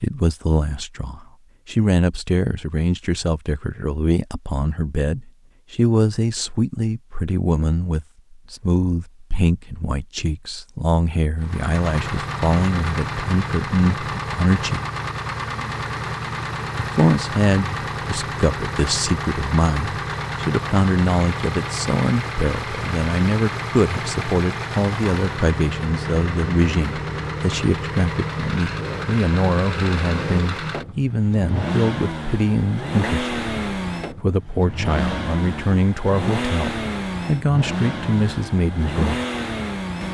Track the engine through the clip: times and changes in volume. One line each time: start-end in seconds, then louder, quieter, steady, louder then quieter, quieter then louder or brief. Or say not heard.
11.4-40.0 steady.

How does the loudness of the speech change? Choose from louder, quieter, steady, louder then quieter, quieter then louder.
steady.